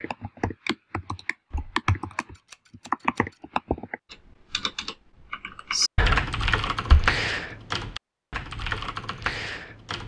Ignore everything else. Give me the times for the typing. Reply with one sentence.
You can hear the typing from 0.0 to 10.0 s.